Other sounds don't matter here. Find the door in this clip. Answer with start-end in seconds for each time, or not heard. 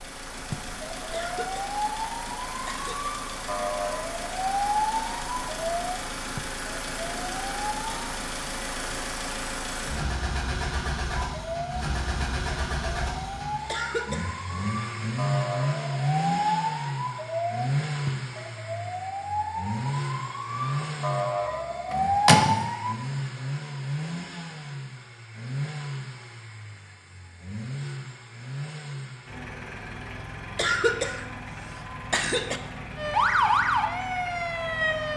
21.9-22.6.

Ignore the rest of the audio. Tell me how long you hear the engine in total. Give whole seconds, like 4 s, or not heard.
35 s.